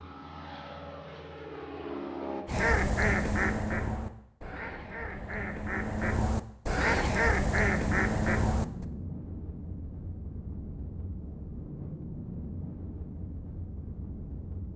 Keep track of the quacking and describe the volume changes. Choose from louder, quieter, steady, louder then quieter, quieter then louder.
quieter then louder.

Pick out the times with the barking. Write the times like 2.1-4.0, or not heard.
not heard.